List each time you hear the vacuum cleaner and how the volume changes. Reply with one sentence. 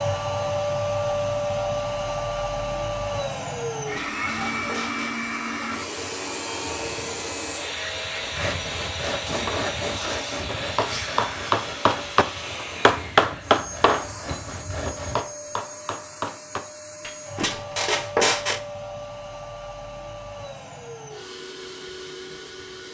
You can hear the vacuum cleaner from 0.0 to 22.8 s, getting quieter.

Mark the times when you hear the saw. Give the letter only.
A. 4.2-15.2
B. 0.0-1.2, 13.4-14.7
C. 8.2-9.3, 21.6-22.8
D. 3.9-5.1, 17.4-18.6
A.